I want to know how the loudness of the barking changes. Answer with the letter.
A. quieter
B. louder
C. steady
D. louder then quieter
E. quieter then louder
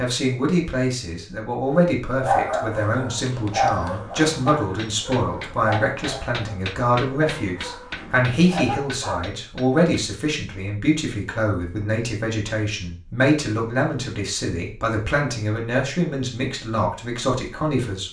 E.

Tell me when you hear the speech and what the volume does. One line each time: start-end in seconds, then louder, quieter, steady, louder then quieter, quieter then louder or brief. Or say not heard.
0.0-18.0 steady.